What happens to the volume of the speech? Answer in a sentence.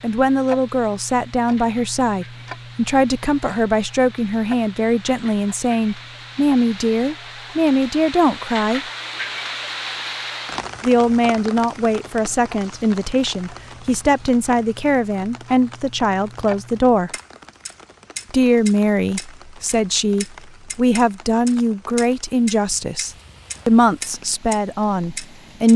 The loudness of the speech stays about the same.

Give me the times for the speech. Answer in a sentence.
The speech can be heard from 0.0 to 8.8 s, from 10.8 to 17.1 s and from 18.3 to 25.7 s.